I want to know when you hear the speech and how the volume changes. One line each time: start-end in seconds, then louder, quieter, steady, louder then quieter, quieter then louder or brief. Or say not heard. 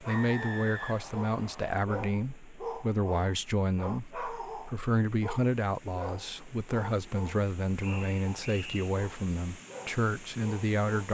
0.0-11.0 steady.